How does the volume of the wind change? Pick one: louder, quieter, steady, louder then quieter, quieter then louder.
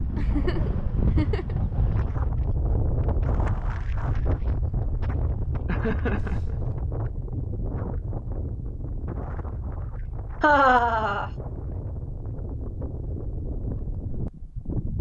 quieter.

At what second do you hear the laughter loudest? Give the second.
11 s.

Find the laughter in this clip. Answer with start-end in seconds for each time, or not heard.
0.1-1.6, 5.7-6.5, 10.4-11.3.